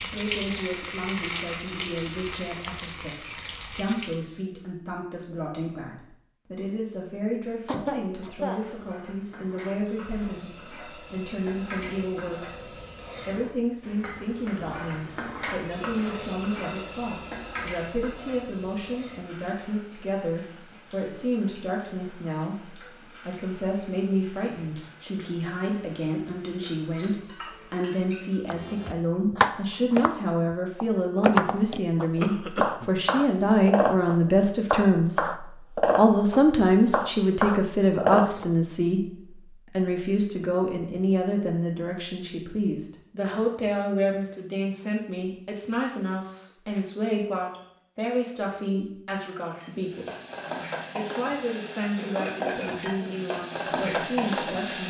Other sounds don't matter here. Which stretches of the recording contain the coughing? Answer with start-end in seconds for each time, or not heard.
7.7-8.6, 32.2-32.9, 52.0-53.3.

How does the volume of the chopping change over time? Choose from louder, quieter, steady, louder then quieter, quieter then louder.
steady.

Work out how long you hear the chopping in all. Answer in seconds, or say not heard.
10 s.